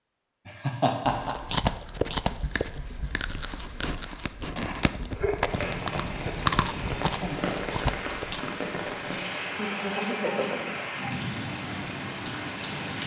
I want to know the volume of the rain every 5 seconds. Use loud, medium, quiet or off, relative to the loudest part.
off, loud, loud.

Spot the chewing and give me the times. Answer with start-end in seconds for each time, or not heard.
1.1-8.4.